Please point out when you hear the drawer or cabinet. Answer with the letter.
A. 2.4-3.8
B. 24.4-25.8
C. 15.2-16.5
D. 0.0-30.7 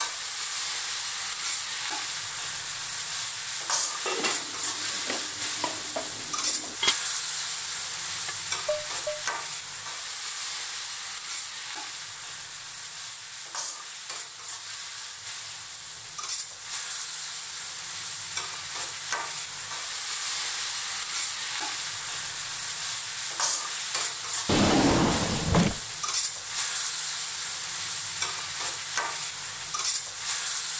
B.